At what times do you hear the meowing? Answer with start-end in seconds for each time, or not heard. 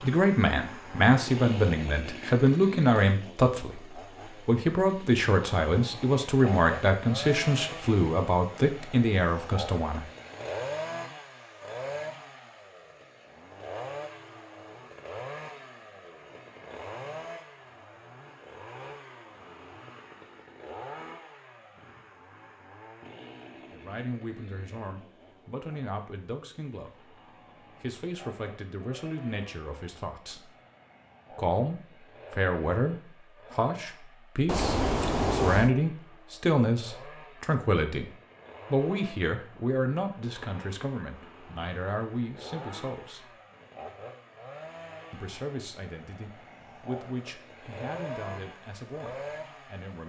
34.5-35.7.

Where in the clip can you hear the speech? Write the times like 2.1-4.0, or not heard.
0.0-10.1, 23.7-27.1, 27.8-30.5, 31.4-38.1, 38.7-43.2, 45.1-50.0.